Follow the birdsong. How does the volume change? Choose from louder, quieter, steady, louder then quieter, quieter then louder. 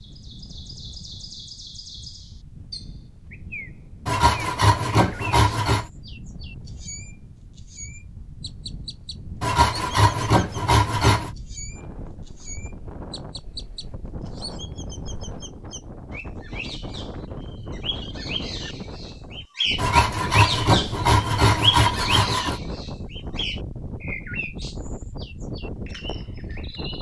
louder then quieter.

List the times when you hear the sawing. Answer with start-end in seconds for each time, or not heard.
4.0-5.8, 9.4-11.3, 19.8-22.6.